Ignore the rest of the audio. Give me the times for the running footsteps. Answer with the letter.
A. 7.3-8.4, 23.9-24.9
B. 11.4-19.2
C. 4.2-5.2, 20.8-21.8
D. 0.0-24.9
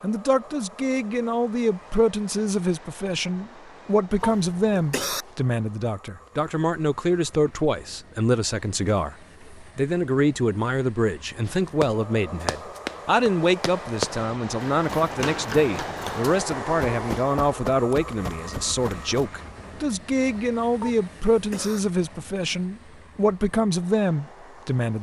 B.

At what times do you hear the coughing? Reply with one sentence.
The coughing can be heard from 4.2 to 5.2 s and from 20.8 to 21.8 s.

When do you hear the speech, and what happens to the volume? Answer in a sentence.
You can hear the speech from 0.0 to 24.9 s, at a steady volume.